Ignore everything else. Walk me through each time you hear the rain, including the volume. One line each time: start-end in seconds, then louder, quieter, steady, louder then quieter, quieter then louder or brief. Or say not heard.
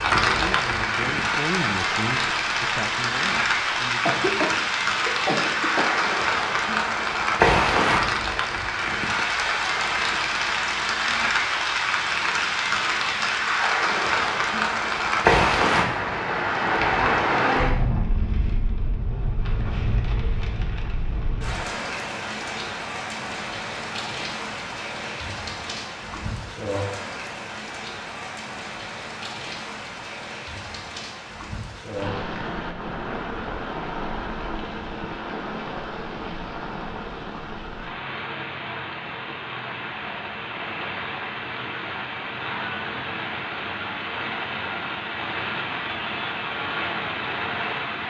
0.0-48.0 quieter.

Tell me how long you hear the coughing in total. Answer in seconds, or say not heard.
2 s.